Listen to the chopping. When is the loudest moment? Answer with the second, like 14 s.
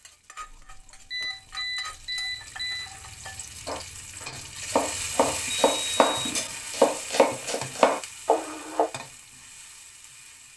7 s.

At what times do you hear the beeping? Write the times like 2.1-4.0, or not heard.
0.4-3.0, 5.7-6.5.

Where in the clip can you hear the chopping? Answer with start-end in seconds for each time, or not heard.
3.6-8.9.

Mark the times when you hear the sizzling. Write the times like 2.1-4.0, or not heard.
0.0-10.5.